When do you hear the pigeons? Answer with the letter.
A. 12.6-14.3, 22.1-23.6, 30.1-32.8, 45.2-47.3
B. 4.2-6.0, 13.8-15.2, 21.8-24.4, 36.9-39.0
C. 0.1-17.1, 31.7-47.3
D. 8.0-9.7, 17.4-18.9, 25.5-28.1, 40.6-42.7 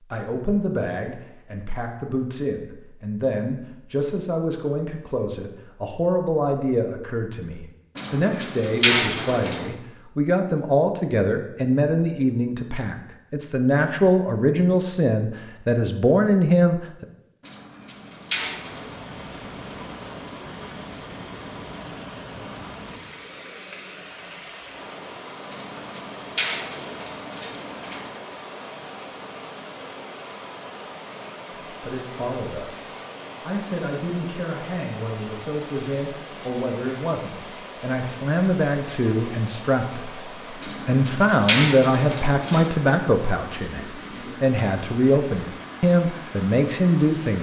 D.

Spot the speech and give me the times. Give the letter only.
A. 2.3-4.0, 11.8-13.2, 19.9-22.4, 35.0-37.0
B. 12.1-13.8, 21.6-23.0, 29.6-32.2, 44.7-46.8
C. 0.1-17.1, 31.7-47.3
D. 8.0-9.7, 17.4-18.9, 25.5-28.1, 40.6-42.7
C.